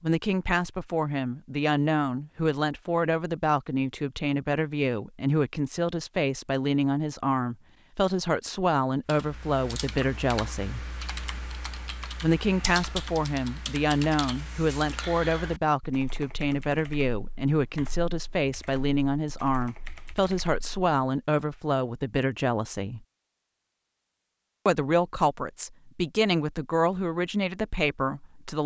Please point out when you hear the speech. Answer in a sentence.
The speech can be heard from 0.0 to 10.8 s, from 12.2 to 23.0 s and from 24.6 to 28.6 s.